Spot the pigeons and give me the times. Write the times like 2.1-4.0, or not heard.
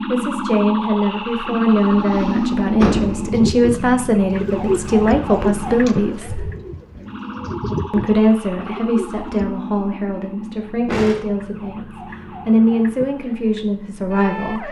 3.1-9.6.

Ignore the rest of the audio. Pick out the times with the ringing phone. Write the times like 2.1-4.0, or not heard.
not heard.